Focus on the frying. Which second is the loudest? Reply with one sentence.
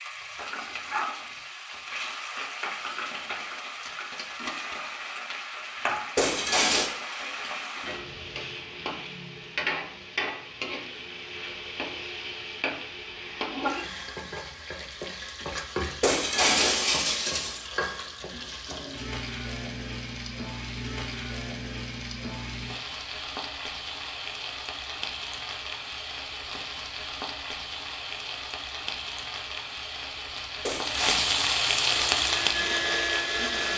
The loudest moment of the frying is at 32 seconds.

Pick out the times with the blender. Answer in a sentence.
You can hear the blender from 31.9 to 33.7 s.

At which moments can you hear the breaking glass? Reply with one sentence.
The breaking glass can be heard from 6.2 to 6.9 s, from 16.0 to 17.6 s and from 30.6 to 31.4 s.